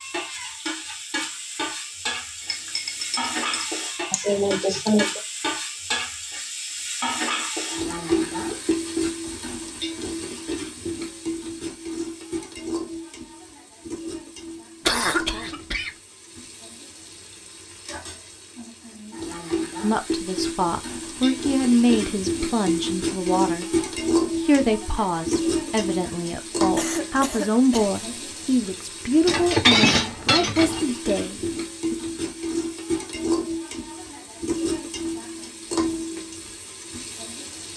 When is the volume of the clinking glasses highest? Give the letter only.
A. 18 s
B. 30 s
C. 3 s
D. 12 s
B.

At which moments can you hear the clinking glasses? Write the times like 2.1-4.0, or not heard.
2.4-3.7, 29.2-30.8.